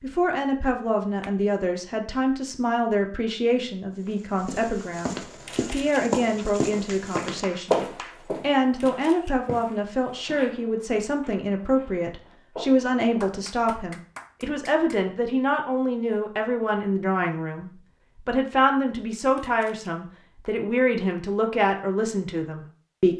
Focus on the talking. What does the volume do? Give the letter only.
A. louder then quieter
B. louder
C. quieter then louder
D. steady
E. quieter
D.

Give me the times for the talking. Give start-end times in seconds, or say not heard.
0.0-23.1.